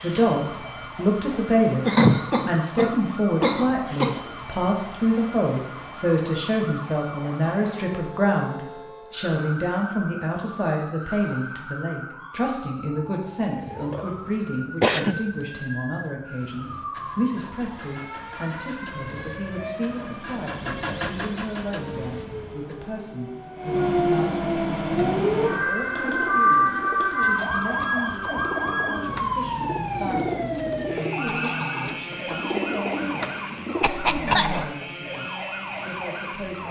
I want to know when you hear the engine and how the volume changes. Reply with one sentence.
The engine can be heard from 16.4 to 22.9 s, getting louder then quieter.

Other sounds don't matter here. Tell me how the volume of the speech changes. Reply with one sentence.
The volume of the speech goes down.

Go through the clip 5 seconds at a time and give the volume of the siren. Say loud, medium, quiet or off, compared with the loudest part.
quiet, quiet, quiet, quiet, medium, loud, medium, medium.